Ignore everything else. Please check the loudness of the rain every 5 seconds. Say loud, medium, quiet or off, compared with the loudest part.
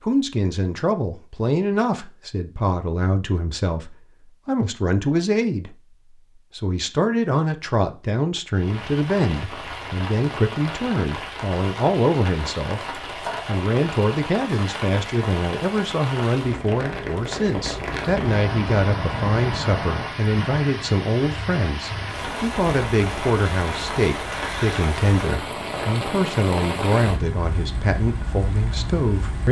off, medium, loud, loud, loud, loud.